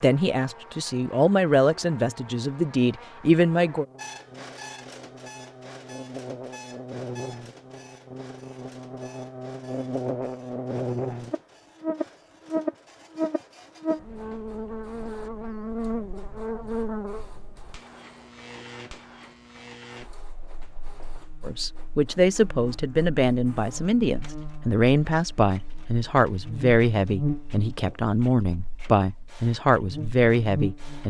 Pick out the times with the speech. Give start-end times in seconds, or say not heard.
0.0-3.9, 21.4-31.0.